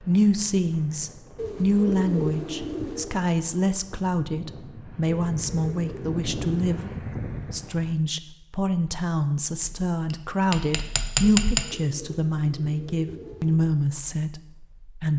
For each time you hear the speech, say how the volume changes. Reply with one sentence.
The speech can be heard from 0.0 to 15.1 s, at a steady volume.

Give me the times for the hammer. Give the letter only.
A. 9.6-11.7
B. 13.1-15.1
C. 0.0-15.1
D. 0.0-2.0
A.